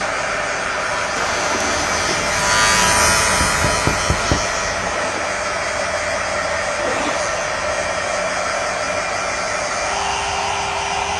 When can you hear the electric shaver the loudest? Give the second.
3 s.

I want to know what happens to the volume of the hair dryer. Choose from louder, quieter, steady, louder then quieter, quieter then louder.
steady.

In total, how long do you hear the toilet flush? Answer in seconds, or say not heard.
2 s.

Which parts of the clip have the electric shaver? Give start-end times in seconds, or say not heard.
0.0-11.1.